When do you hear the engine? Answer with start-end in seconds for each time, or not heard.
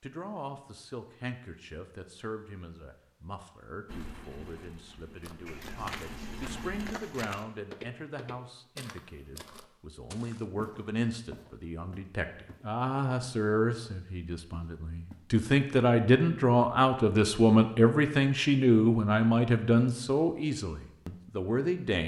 3.9-7.0.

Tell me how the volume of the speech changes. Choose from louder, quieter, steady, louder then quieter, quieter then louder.
louder.